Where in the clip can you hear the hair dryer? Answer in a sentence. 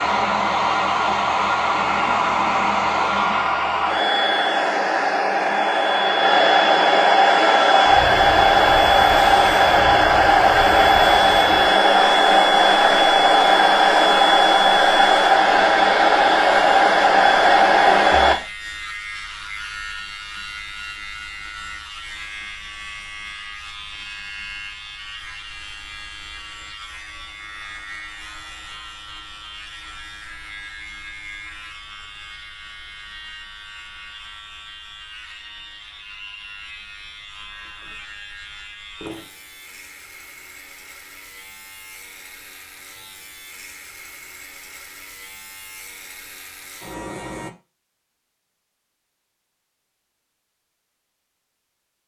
You can hear the hair dryer from 0.0 to 18.4 s.